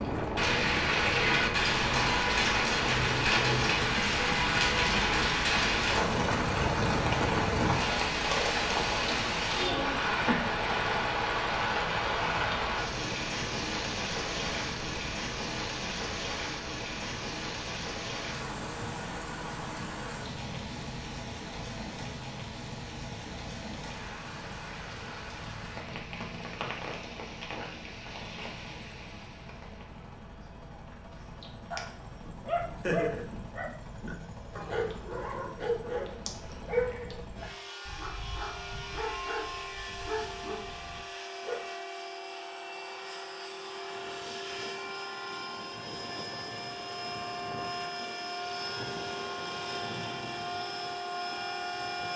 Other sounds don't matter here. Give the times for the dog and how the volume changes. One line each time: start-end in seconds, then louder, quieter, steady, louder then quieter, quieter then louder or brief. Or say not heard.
31.7-41.7 quieter.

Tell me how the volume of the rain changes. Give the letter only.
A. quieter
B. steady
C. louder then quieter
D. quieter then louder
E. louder
A.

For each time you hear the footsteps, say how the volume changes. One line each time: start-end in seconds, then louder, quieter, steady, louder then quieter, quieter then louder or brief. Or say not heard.
not heard.